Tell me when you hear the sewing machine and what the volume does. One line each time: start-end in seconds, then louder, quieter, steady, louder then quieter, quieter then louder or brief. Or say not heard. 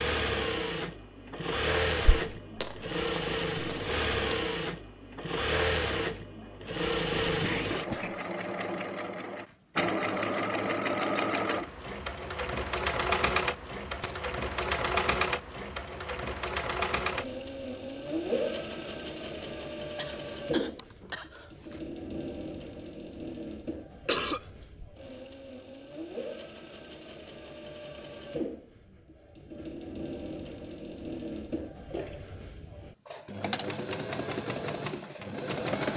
0.0-35.9 quieter.